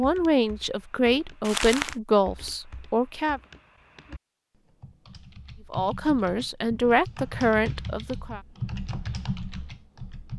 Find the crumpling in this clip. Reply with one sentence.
The crumpling can be heard from 1.4 to 1.9 s.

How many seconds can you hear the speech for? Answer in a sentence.
You can hear the speech for 6 seconds altogether.